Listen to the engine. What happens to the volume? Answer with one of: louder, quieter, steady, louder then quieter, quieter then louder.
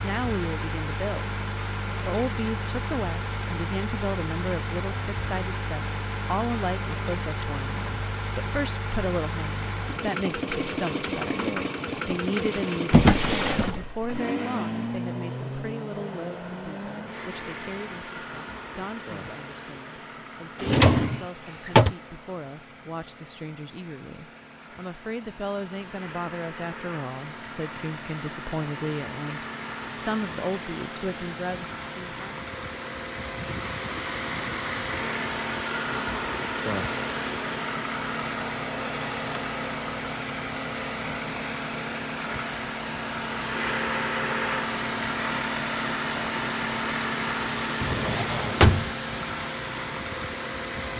quieter then louder.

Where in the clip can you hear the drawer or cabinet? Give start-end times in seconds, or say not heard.
12.9-14.1, 20.6-21.9, 47.8-48.9.